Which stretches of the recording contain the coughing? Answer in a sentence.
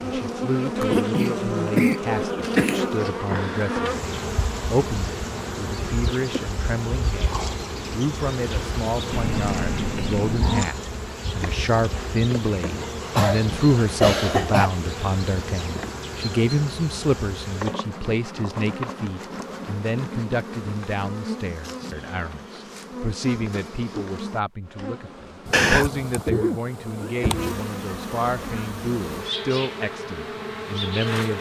You can hear the coughing from 0.8 to 2.9 s, from 13.2 to 14.7 s and from 25.5 to 27.6 s.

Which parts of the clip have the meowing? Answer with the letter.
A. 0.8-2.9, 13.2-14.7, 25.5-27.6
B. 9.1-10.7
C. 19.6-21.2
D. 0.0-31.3
B.